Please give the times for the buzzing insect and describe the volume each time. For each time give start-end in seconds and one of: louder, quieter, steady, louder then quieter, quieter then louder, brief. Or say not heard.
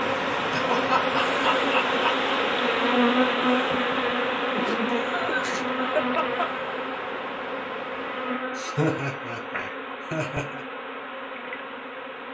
0.0-12.2 quieter.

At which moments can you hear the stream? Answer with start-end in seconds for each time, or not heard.
0.0-8.5.